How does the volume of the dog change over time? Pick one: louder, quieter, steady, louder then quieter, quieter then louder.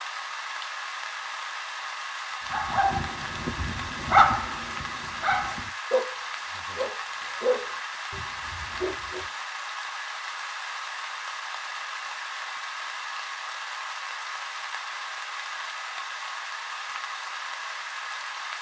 louder then quieter.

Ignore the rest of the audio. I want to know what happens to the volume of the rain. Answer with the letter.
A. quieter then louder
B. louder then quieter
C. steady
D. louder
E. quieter
C.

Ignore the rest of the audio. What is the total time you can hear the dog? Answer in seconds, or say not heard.
7 s.